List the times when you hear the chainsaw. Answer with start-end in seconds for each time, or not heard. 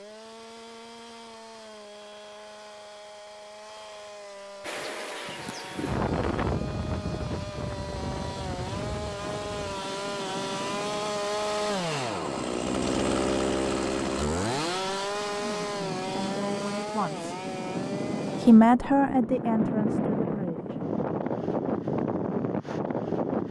0.0-18.6.